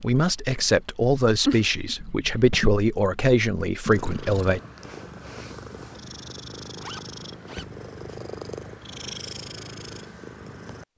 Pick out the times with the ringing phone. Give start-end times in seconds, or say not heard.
not heard.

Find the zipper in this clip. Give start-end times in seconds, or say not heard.
6.8-7.7.